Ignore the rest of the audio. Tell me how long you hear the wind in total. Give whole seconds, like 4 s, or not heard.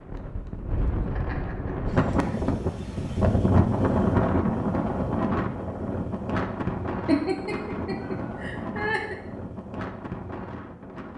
11 s.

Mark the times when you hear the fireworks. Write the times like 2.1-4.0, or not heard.
not heard.